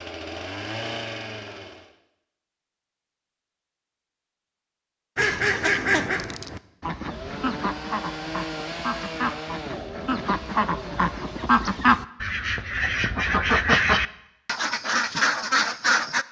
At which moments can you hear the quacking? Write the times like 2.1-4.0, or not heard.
5.2-16.2.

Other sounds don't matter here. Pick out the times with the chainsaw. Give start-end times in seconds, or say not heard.
0.0-1.9, 7.0-11.6.